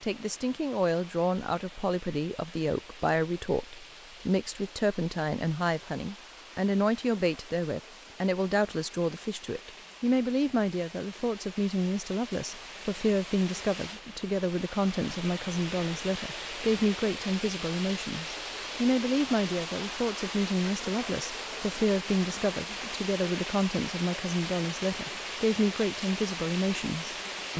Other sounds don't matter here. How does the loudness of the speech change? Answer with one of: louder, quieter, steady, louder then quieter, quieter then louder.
steady.